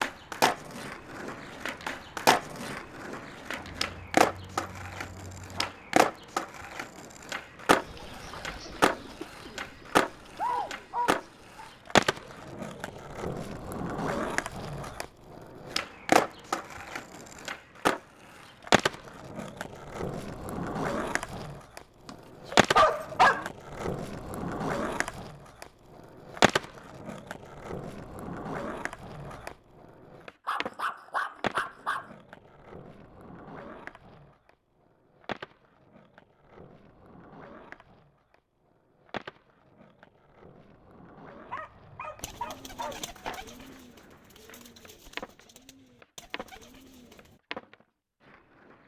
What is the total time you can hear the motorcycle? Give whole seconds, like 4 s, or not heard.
not heard.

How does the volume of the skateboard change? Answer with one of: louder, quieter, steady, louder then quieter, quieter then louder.
quieter.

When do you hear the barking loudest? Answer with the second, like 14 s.
23 s.